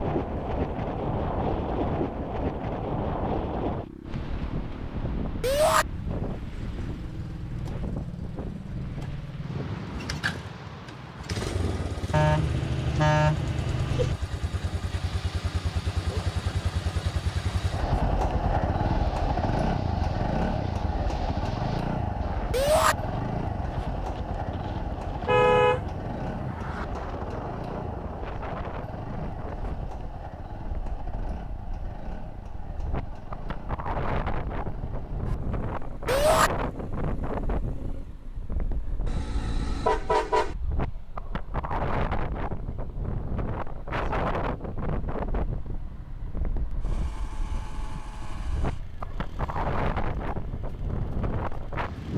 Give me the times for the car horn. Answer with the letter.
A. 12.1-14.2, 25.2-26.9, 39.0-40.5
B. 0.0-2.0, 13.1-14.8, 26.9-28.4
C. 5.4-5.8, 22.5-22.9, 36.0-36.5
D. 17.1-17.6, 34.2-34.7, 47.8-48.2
A.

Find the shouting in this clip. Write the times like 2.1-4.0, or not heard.
5.4-5.8, 22.5-22.9, 36.0-36.5.